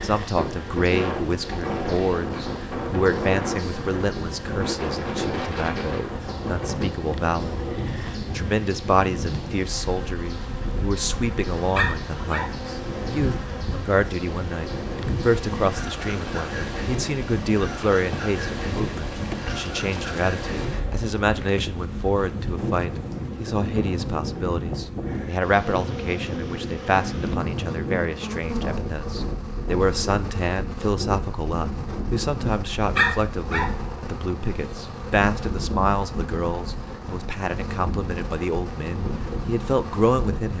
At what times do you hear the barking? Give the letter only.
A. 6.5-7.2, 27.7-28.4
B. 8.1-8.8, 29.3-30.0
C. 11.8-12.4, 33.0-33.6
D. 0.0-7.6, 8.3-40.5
C.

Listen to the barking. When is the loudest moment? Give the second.
33 s.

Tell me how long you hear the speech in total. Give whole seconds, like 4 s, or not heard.
40 s.